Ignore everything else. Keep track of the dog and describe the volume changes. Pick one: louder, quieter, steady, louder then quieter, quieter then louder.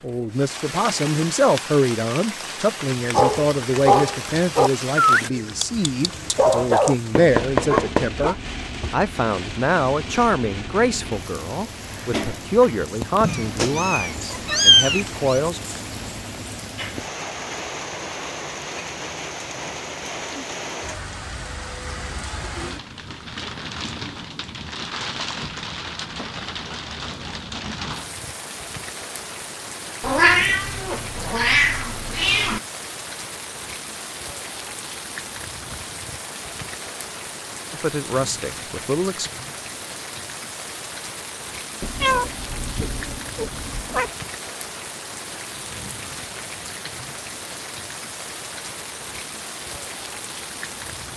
quieter then louder.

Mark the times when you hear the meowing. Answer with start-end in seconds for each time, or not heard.
13.2-15.4, 30.0-32.6, 41.8-44.1.